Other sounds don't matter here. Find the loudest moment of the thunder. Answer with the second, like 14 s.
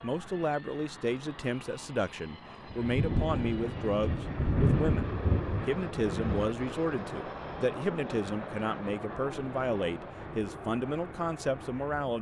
5 s.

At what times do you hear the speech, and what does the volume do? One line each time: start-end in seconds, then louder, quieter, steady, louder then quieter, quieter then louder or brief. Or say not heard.
0.0-12.1 steady.